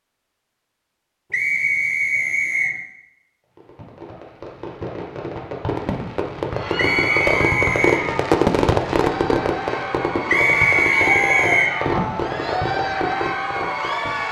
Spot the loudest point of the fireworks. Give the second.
8 s.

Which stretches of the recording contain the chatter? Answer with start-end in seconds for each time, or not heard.
6.5-14.2.